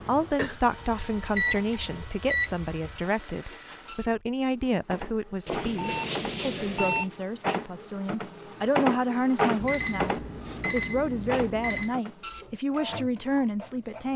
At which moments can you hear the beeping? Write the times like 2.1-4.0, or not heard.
0.3-3.0, 5.5-7.1, 9.6-11.9.